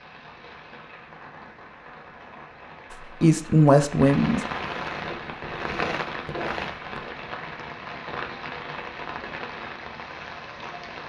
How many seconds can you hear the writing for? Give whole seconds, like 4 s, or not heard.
2 s.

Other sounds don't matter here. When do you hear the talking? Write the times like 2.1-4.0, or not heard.
2.9-4.4.